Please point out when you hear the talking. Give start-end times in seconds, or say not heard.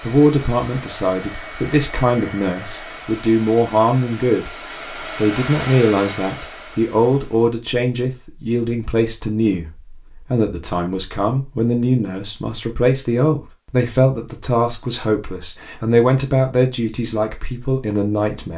0.0-4.5, 5.2-18.5.